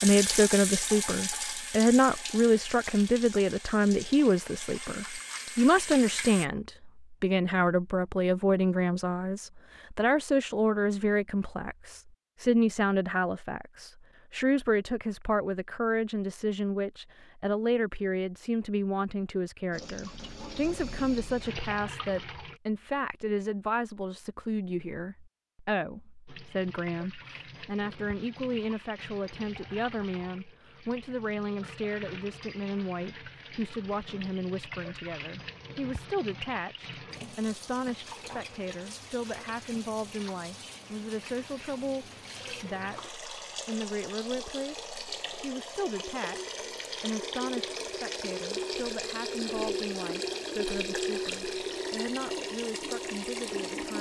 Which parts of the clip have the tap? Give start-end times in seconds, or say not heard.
0.0-6.5, 19.7-22.6, 26.2-53.9.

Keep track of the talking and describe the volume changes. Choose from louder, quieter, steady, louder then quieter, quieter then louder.
quieter.